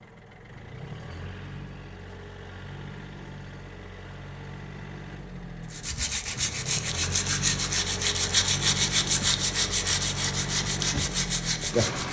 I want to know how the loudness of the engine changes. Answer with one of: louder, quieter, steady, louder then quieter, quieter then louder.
louder.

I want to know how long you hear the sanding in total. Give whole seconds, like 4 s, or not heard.
6 s.